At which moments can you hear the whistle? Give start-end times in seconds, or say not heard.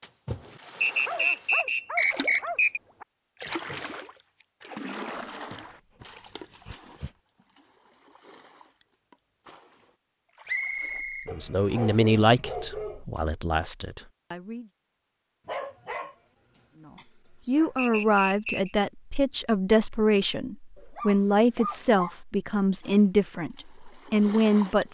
0.8-2.8, 10.4-12.1, 17.8-18.8.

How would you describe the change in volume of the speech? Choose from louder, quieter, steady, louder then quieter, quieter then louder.
steady.